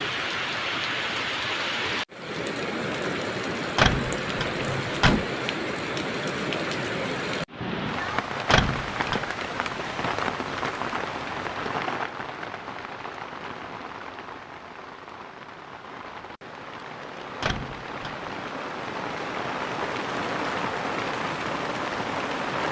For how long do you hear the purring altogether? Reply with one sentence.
The purring can't be heard in this clip.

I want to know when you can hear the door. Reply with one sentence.
The door can be heard from 3.8 to 5.2 s, from 8.5 to 9.2 s and from 17.4 to 18.4 s.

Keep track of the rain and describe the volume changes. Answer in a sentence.
The loudness of the rain goes down, then up.